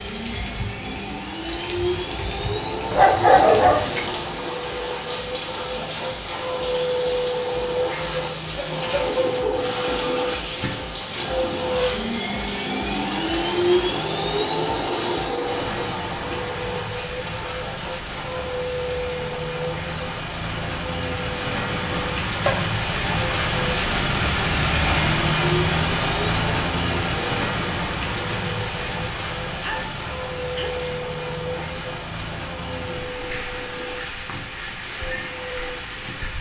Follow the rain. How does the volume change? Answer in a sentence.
The loudness of the rain goes up, then down.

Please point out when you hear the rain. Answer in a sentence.
You can hear the rain from 0.0 to 36.3 s.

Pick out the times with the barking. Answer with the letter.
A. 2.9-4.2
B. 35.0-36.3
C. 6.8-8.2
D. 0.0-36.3
A.